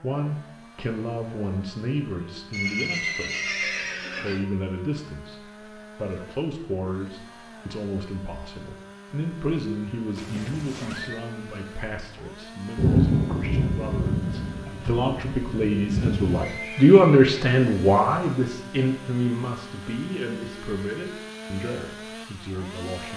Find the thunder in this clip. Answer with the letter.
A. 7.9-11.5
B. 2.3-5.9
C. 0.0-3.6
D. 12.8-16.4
D.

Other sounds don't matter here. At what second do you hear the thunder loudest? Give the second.
13 s.